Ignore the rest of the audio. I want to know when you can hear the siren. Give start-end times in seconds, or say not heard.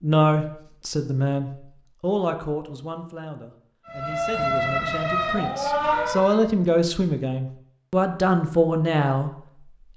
3.9-6.4.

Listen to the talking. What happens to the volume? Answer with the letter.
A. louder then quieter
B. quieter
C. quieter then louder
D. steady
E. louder
C.